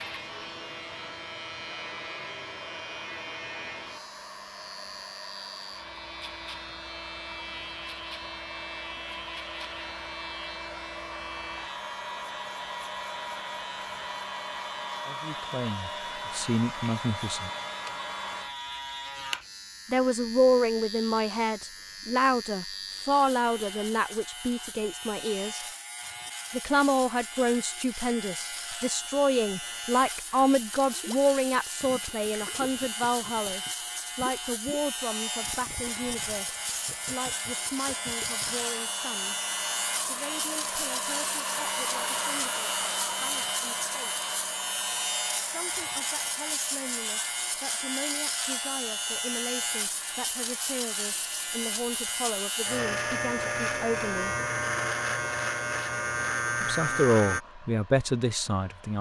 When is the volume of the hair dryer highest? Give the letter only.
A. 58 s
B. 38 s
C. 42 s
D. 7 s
C.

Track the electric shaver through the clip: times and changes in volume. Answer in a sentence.
You can hear the electric shaver from 0.0 to 57.4 s, getting louder.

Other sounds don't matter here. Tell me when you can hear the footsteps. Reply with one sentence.
The footsteps can't be heard in this clip.